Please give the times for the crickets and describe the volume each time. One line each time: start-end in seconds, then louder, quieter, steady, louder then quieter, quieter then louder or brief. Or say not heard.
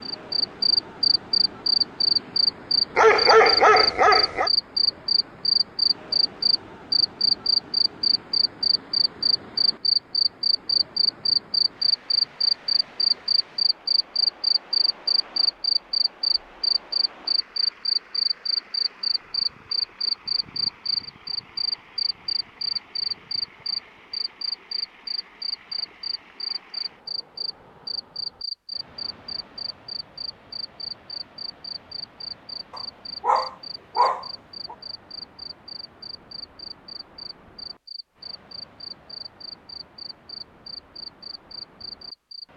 0.0-42.5 quieter.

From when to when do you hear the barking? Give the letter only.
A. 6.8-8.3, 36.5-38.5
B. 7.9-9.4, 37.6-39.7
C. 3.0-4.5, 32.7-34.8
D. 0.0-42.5
C.